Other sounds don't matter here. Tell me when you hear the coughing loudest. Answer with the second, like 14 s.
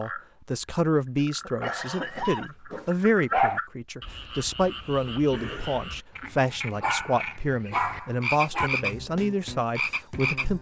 2 s.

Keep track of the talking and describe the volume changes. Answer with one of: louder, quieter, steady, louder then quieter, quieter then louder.
steady.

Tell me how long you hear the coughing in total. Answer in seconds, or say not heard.
2 s.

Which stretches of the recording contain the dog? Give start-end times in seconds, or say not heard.
1.6-3.6, 6.8-8.7.